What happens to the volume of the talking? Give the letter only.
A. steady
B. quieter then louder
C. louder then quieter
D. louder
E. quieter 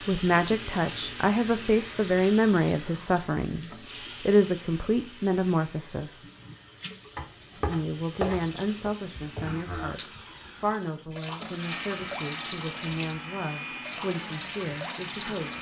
E.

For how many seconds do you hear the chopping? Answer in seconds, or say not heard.
2 s.